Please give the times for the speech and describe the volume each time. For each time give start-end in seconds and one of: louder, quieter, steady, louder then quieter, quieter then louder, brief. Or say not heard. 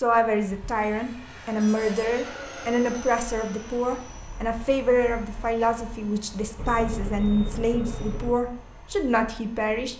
0.0-9.9 steady.